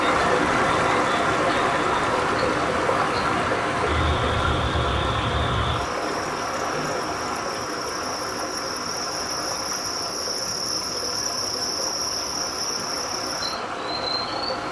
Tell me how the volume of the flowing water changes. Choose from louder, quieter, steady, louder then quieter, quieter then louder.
quieter.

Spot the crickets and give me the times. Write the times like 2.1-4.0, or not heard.
0.0-14.4.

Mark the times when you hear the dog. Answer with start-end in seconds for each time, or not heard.
not heard.